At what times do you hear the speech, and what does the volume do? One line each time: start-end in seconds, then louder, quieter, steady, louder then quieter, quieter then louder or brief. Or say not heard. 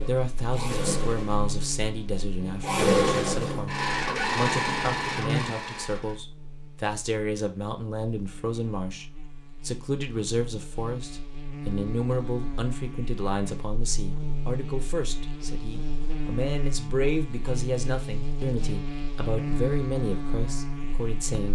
0.1-21.4 steady.